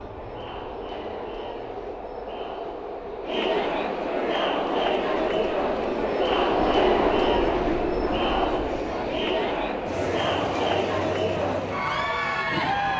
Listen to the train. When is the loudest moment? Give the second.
7 s.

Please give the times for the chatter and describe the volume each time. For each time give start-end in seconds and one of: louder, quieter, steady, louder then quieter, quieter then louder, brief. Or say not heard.
0.0-12.9 louder.